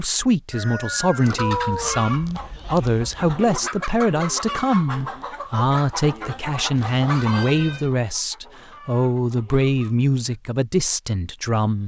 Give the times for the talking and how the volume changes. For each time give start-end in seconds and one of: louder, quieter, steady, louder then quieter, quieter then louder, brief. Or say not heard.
0.0-11.8 steady.